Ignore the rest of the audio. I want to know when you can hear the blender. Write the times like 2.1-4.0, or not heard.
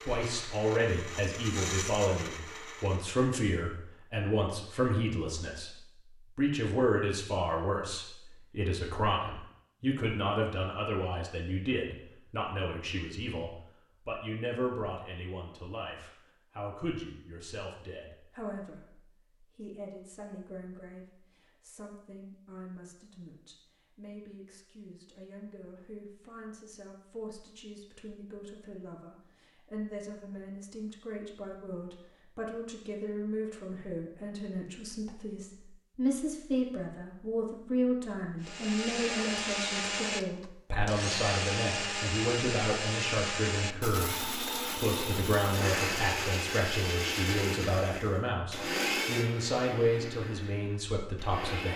0.0-3.2, 38.4-51.7.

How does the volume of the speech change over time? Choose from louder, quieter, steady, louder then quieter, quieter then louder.
quieter then louder.